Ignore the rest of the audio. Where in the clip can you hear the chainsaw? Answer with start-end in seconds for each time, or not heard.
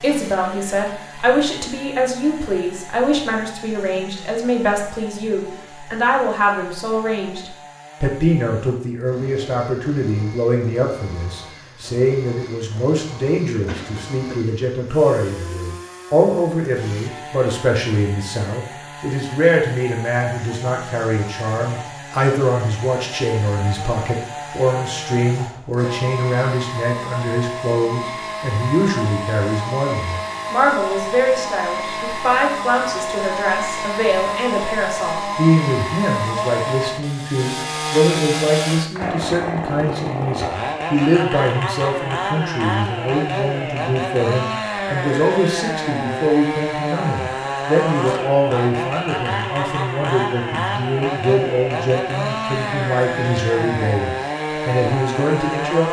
0.0-55.8.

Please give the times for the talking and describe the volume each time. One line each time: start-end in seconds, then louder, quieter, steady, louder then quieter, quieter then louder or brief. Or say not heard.
0.0-55.8 steady.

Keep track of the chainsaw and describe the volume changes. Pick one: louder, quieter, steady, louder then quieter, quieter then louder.
louder.